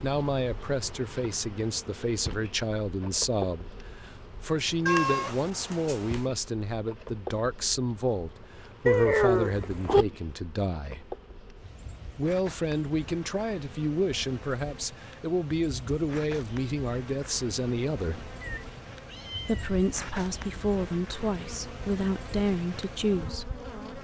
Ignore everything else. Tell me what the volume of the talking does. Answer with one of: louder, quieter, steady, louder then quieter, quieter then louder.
steady.